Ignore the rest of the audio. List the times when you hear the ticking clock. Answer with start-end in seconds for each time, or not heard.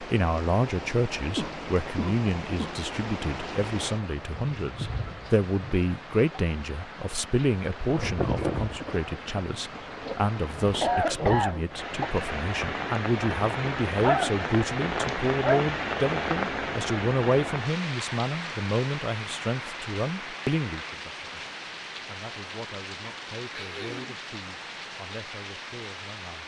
not heard.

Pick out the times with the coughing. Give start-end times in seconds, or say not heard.
1.4-2.8, 10.8-12.2, 23.5-24.2.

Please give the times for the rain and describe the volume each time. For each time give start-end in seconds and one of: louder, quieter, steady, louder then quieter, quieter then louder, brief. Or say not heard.
0.0-26.4 louder then quieter.